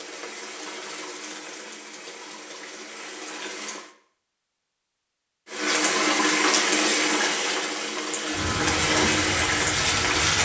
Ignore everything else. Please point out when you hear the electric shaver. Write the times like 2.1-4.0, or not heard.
8.3-10.4.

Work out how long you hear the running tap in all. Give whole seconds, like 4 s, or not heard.
9 s.